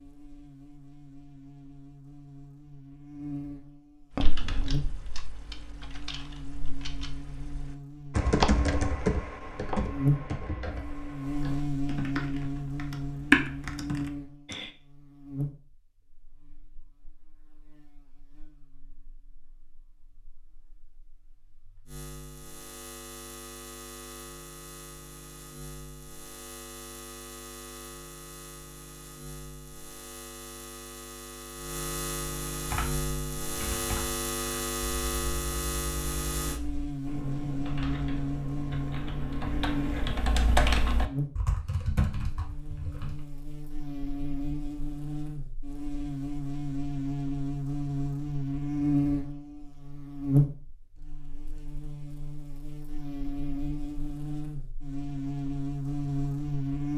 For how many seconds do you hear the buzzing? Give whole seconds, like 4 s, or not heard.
57 s.